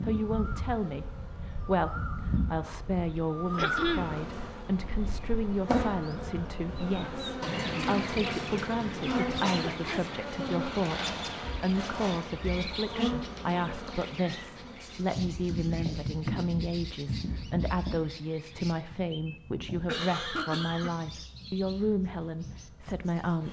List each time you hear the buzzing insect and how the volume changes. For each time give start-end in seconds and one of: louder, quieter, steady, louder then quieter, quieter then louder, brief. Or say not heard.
0.0-23.4 louder then quieter.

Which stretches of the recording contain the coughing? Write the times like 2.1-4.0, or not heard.
3.5-4.1, 9.4-10.1, 19.9-20.9.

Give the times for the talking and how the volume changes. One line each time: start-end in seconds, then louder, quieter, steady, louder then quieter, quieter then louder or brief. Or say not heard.
0.0-23.4 steady.